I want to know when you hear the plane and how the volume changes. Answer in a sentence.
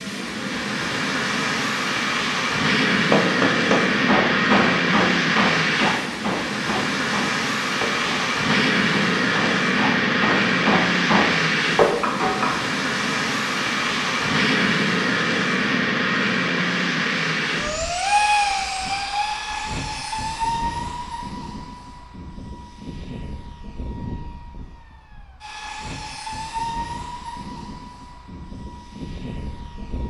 You can hear the plane from 0.0 to 30.0 s, getting quieter.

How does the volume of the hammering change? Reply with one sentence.
The loudness of the hammering goes down, then up.